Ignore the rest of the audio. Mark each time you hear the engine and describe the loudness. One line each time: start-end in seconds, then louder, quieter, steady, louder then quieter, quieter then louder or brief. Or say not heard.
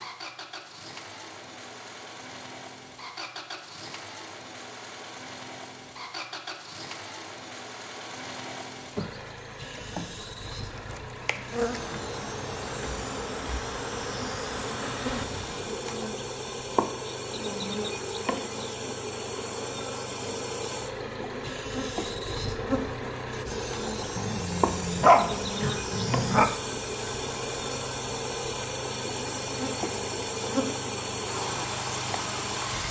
0.0-32.8 louder.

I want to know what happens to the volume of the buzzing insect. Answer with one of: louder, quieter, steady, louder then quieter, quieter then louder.
steady.